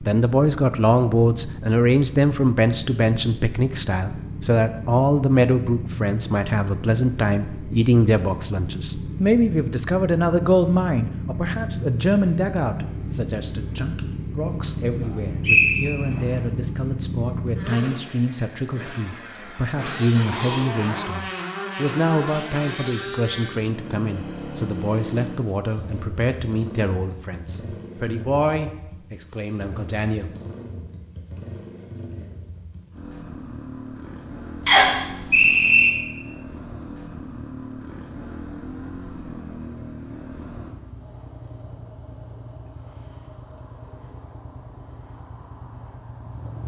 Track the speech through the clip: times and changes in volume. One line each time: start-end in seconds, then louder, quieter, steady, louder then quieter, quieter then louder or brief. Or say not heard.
0.0-30.3 quieter.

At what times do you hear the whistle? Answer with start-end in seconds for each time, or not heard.
15.0-16.2, 34.6-35.9.